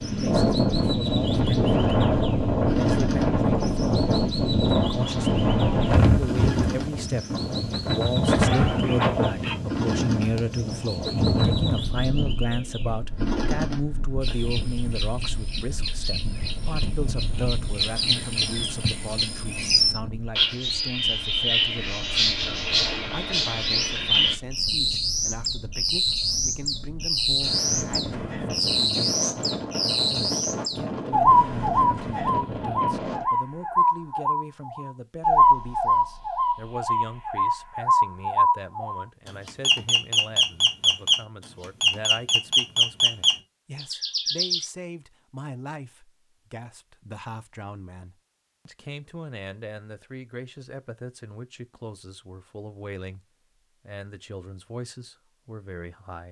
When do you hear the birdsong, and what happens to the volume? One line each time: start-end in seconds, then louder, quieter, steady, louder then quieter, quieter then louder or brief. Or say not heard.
0.0-44.6 louder.